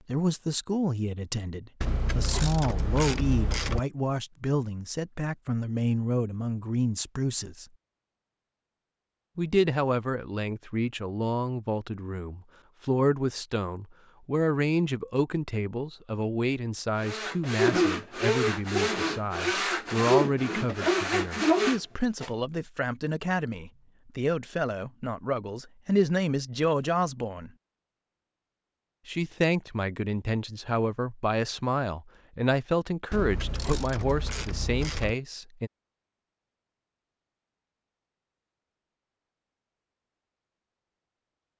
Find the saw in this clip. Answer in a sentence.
You can hear the saw from 17.0 to 22.3 s.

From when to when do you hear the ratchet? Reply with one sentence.
The ratchet can be heard from 1.8 to 3.8 s and from 33.1 to 35.1 s.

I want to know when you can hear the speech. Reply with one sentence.
You can hear the speech from 0.1 to 7.7 s, from 9.3 to 27.5 s and from 29.1 to 35.7 s.